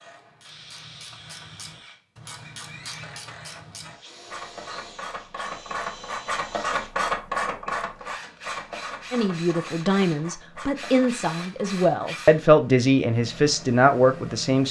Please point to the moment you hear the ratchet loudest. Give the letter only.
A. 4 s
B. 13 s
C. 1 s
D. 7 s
D.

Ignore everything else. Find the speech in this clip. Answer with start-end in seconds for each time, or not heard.
9.1-14.6.